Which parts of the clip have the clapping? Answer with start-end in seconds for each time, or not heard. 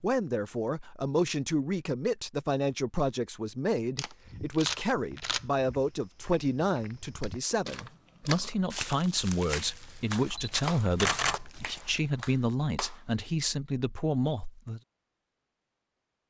7.2-13.0.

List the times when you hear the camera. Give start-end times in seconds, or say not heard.
4.0-5.4, 10.2-11.5.